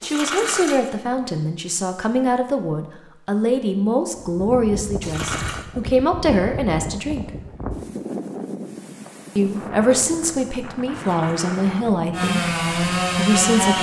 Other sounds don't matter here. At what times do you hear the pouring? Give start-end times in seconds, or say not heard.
0.0-0.9, 5.0-5.7, 10.9-11.7.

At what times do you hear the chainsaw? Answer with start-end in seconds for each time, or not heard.
12.1-13.7.